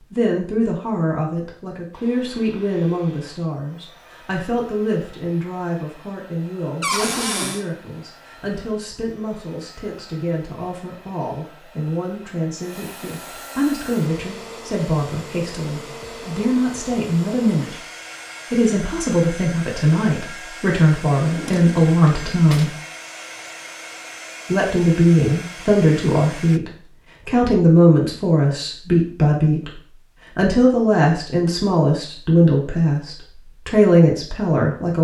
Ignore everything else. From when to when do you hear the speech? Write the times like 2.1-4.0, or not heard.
0.1-17.8, 18.5-22.8, 24.5-34.9.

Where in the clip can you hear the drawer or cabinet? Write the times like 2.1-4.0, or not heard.
6.8-7.7, 21.1-22.7.